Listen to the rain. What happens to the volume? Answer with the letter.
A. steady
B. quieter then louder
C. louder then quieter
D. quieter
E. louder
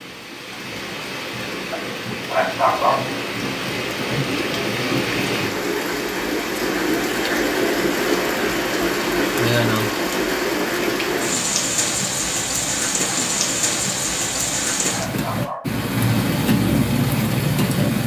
E.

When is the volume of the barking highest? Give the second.
3 s.